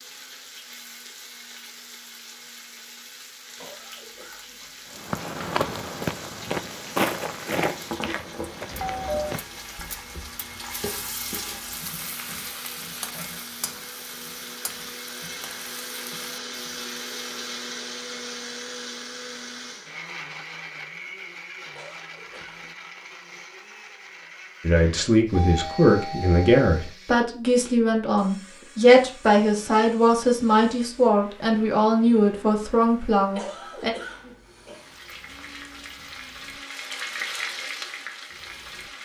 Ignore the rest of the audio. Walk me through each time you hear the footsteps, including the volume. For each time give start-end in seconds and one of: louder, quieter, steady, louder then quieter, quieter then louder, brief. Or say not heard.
5.0-10.4 quieter.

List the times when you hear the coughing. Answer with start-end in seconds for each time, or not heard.
3.5-5.0, 21.7-22.7, 33.4-34.9.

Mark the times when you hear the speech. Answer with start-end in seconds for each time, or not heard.
24.6-33.9.